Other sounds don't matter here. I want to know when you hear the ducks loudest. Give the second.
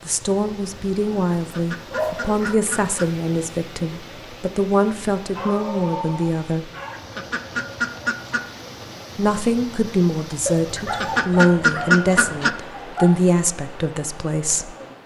12 s.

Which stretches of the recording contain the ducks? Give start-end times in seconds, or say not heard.
1.4-3.0, 6.9-8.4, 10.8-12.5.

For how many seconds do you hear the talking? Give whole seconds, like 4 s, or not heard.
12 s.